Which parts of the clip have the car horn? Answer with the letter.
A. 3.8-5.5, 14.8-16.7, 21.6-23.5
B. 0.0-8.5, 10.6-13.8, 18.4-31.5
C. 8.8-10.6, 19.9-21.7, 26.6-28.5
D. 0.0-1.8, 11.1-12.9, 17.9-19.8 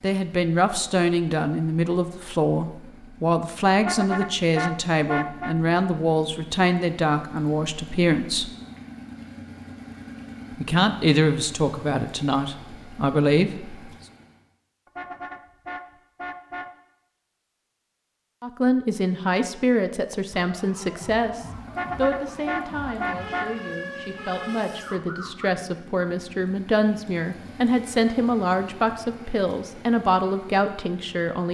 A.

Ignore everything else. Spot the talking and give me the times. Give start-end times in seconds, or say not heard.
0.0-8.5, 10.6-13.8, 18.4-31.5.